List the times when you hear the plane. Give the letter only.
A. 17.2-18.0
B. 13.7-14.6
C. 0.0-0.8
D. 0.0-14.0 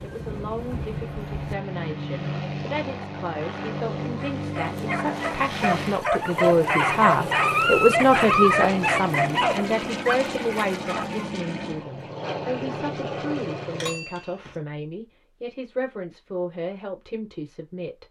D.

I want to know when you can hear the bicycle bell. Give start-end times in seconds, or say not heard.
13.7-14.6.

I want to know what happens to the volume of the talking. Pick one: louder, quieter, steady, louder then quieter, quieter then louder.
louder then quieter.